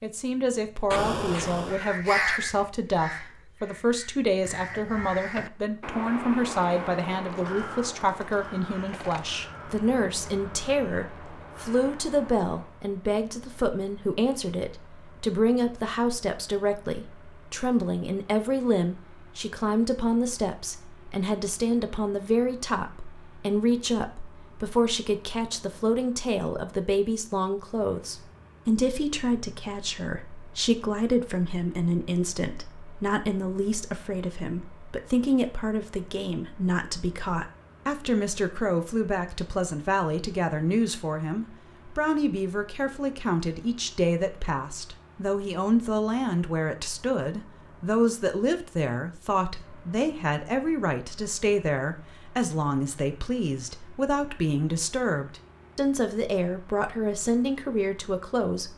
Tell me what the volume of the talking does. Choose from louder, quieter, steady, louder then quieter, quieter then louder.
steady.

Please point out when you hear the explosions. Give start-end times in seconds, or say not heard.
0.9-1.8.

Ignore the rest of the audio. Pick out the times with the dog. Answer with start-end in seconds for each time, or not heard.
not heard.